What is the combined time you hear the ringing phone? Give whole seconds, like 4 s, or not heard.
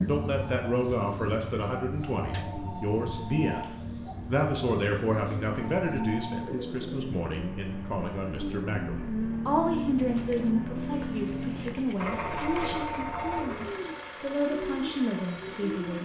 4 s.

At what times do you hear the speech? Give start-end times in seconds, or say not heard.
0.1-15.9.